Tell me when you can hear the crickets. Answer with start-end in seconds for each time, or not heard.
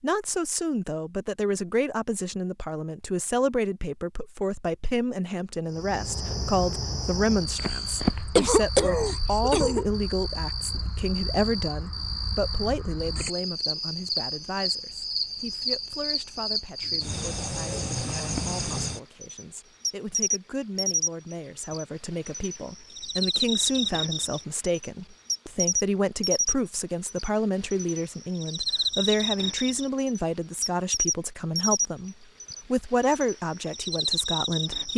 5.7-34.9.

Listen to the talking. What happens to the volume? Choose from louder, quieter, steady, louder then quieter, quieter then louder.
quieter then louder.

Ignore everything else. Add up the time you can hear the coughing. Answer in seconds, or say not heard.
2 s.